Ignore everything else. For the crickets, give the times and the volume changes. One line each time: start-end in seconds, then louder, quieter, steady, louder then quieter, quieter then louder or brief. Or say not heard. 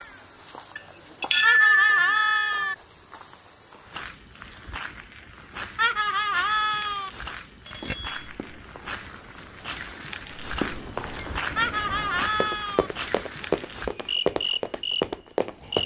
0.0-15.8 louder.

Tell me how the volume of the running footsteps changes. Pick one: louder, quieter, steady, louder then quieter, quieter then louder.
louder.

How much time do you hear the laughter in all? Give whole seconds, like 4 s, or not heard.
4 s.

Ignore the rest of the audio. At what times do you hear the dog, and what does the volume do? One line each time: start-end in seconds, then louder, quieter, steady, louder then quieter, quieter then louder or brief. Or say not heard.
not heard.